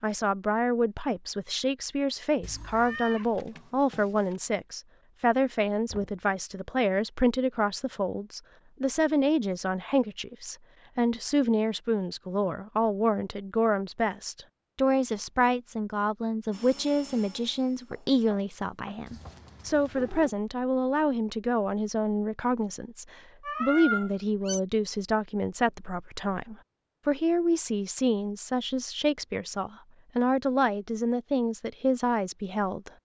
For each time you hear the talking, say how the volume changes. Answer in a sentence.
You can hear the talking from 0.0 to 33.0 s, at a steady volume.